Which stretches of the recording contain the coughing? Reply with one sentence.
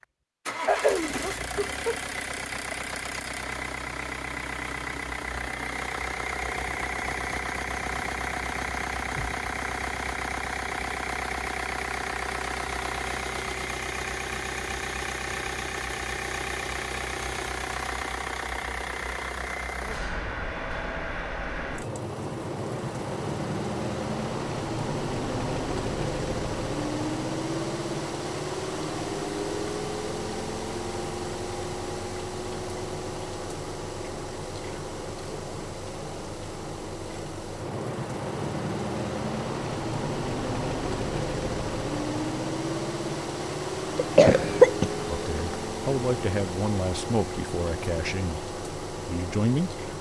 The coughing can be heard from 0.7 to 2.9 s and from 44.0 to 45.5 s.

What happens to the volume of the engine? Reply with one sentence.
The volume of the engine stays about the same.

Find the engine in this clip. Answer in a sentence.
The engine can be heard from 0.0 to 49.9 s.